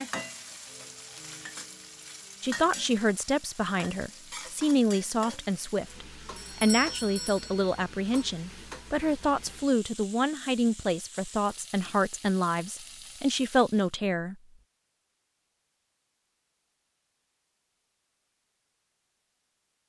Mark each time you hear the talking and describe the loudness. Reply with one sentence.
The talking can be heard from 2.4 to 14.3 s, at a steady volume.